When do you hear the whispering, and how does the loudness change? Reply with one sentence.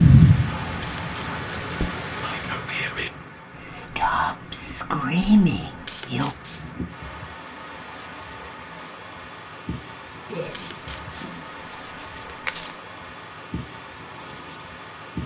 You can hear the whispering from 0.5 to 6.3 s, getting louder.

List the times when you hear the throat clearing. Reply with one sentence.
You can hear the throat clearing from 10.3 to 11.4 s.